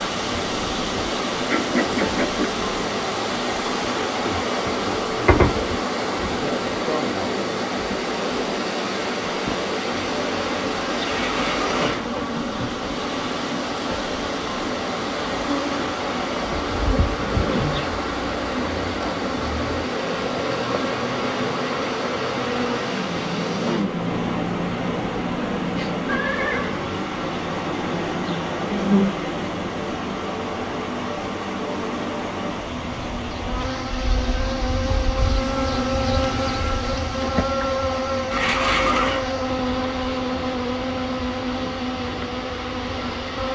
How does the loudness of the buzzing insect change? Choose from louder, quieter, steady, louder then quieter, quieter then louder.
steady.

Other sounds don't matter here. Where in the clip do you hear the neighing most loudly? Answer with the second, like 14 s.
39 s.